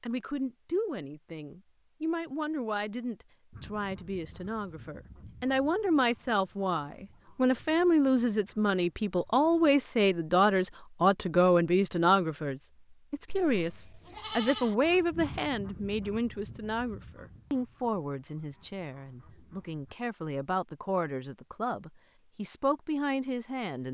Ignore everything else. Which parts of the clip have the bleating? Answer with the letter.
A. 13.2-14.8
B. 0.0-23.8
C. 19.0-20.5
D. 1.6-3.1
A.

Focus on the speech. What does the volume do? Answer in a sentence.
The volume of the speech goes up, then down.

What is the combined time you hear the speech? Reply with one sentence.
The speech can be heard for 24 seconds in total.